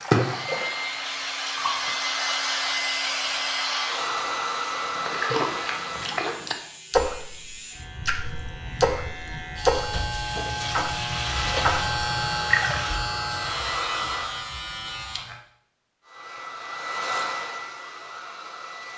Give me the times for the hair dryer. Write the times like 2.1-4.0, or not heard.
0.1-6.2, 11.2-14.4, 16.0-18.9.